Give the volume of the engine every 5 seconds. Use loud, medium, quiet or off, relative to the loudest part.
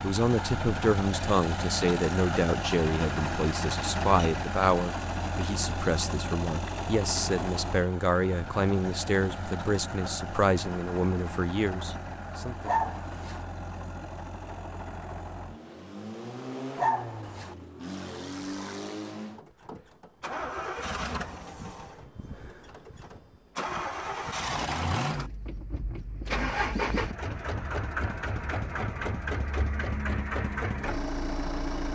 loud, loud, medium, medium, loud, loud, loud.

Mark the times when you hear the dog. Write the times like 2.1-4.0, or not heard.
12.7-13.4, 16.8-17.6.